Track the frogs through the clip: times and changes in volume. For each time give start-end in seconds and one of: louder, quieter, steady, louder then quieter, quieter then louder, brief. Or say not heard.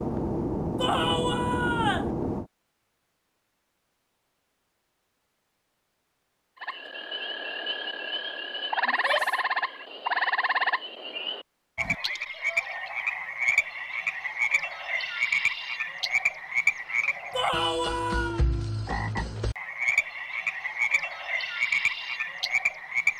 6.6-23.1 steady.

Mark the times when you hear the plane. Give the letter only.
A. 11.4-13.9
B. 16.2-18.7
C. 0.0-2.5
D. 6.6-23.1
C.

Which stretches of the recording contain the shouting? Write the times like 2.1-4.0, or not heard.
0.8-2.1, 8.8-9.3, 17.3-18.4.